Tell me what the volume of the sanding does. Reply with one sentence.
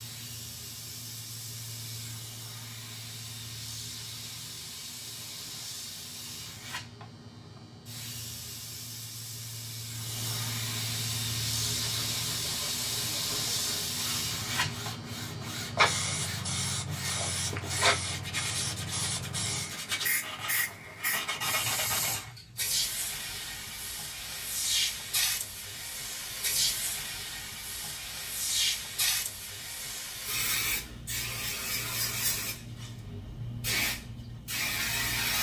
The loudness of the sanding goes up.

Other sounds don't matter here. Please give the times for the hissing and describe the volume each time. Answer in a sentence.
You can hear the hissing from 0.0 to 35.3 s, getting louder.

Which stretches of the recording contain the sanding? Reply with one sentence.
The sanding can be heard from 11.6 to 22.2 s.